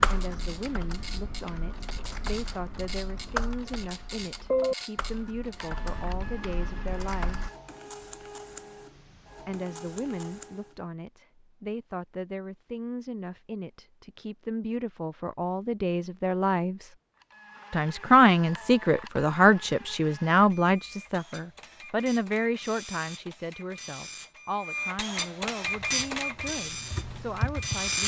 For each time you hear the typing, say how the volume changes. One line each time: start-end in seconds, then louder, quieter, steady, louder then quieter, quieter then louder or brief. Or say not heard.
0.0-7.5 louder then quieter
25.6-27.9 brief.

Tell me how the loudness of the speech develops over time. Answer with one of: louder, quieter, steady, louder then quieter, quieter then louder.
louder then quieter.